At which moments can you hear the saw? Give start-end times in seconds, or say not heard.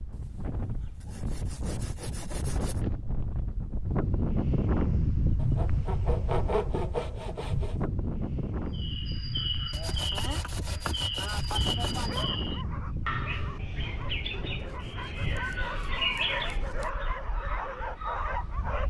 0.1-2.9, 5.3-7.8, 9.7-12.3, 14.6-16.9.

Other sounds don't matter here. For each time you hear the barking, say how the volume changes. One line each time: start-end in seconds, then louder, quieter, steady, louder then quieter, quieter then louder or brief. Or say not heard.
12.0-18.8 louder.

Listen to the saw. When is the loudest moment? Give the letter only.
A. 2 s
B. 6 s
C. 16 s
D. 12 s
B.